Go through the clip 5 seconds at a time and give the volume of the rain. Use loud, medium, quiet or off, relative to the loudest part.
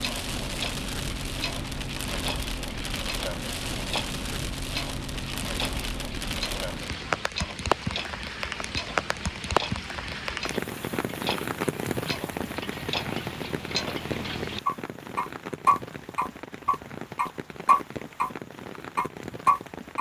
loud, loud, loud, medium.